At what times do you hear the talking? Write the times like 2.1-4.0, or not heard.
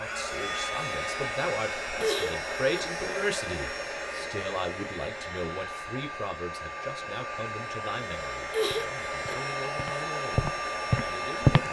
0.0-11.6.